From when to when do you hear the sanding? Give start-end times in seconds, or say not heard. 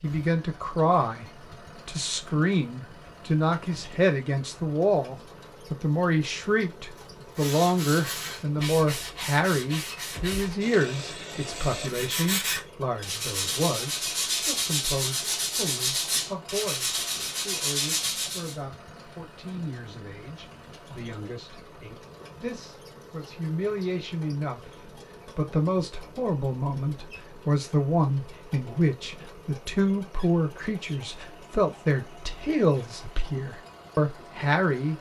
7.0-18.6.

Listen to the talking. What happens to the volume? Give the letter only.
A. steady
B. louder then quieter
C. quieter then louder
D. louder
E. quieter
C.